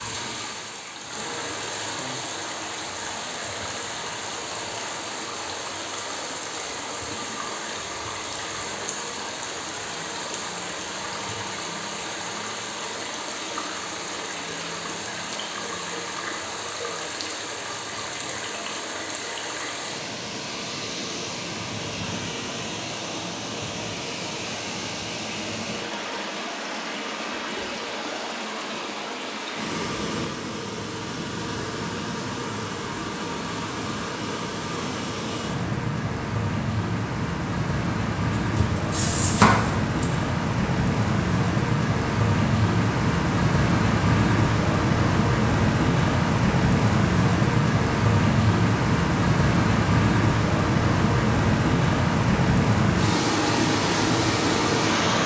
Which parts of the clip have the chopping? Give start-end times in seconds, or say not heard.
38.4-40.1.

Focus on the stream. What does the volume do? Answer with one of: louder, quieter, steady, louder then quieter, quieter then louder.
louder.